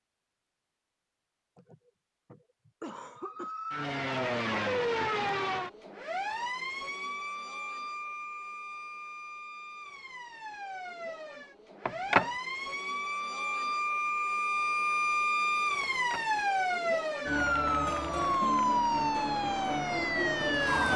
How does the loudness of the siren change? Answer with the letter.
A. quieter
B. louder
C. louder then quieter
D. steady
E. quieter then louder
E.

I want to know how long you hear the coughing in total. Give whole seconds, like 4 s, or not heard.
2 s.